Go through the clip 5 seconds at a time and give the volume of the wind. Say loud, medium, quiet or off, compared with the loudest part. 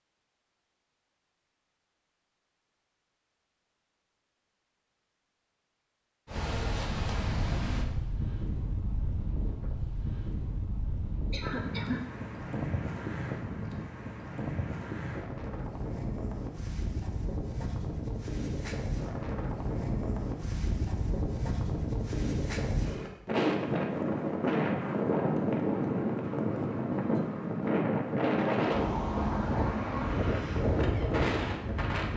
off, medium, medium, medium, loud, loud, loud.